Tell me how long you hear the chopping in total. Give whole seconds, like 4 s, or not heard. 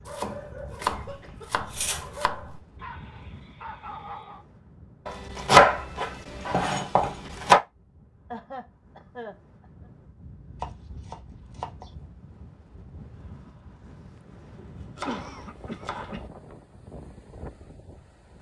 8 s.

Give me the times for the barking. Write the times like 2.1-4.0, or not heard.
0.0-4.5.